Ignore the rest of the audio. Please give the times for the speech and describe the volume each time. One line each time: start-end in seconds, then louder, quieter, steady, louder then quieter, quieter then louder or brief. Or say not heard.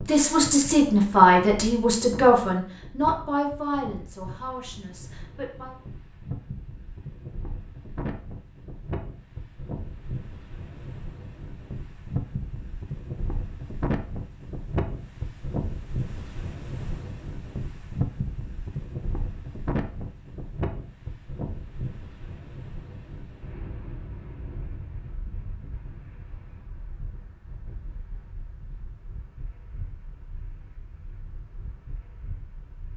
0.0-5.8 quieter.